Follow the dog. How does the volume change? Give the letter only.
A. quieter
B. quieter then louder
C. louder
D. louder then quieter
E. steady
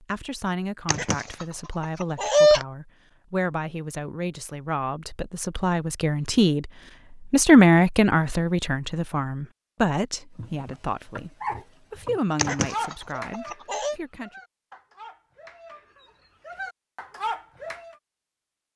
B.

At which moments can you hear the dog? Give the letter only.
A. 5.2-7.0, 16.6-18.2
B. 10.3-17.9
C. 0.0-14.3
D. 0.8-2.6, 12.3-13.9
B.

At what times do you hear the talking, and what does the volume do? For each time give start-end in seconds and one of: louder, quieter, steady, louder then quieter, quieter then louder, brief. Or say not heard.
0.0-14.3 louder then quieter.